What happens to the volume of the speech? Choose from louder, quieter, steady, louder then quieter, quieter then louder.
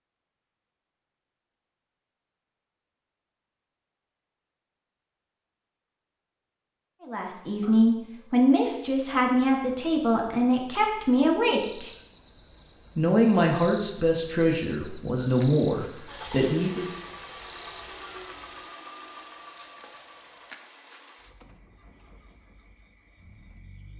steady.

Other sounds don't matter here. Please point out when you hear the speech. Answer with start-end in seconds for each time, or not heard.
7.0-11.9, 12.9-16.9.